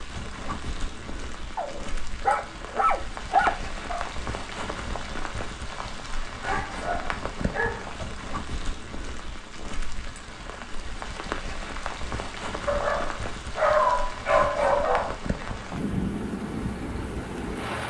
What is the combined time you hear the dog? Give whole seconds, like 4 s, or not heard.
7 s.